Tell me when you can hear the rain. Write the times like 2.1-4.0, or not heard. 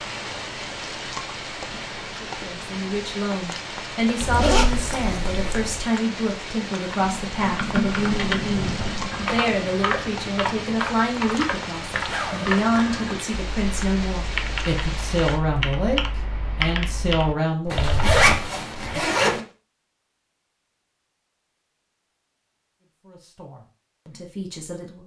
0.0-15.4.